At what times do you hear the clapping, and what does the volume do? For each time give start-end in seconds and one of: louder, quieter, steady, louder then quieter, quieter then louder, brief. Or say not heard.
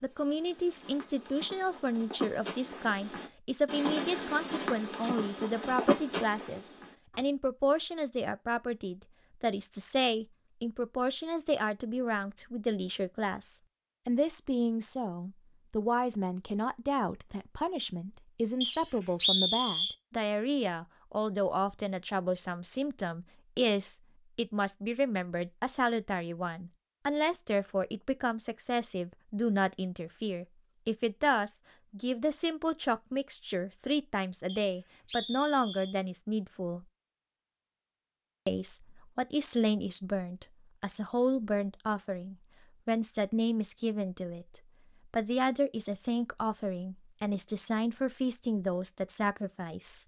not heard.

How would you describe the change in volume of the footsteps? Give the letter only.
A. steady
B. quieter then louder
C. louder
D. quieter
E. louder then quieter
C.